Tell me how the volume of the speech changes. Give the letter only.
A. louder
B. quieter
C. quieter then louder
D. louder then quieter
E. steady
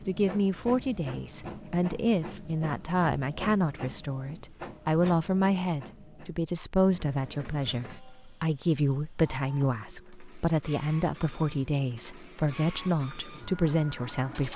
E.